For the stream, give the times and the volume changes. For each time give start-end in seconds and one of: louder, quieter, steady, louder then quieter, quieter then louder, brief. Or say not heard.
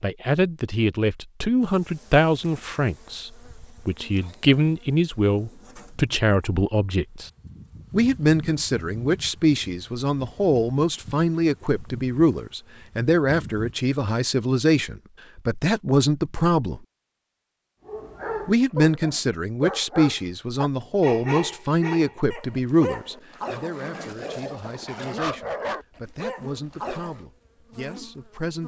not heard.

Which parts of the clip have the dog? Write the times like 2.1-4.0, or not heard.
17.9-27.2.